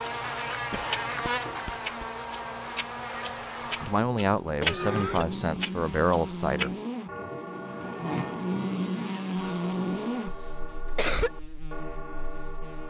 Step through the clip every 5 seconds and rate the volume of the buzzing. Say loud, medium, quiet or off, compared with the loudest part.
loud, loud, medium.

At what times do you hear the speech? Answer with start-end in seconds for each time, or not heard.
3.8-6.8.